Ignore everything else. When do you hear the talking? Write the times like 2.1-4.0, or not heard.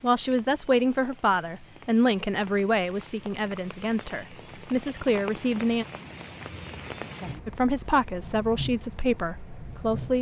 0.0-5.8, 7.5-10.1.